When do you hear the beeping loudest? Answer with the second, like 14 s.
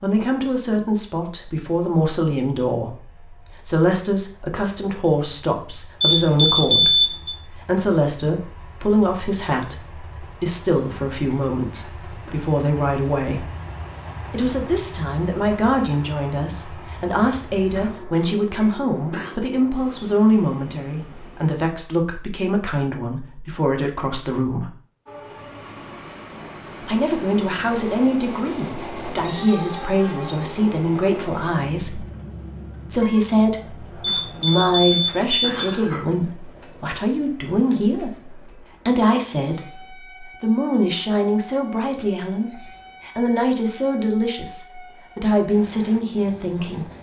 7 s.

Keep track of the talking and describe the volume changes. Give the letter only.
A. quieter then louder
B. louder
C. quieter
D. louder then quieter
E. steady
E.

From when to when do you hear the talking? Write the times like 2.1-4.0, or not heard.
0.0-3.0, 3.6-13.5, 14.3-24.7, 26.8-32.0, 32.9-46.9.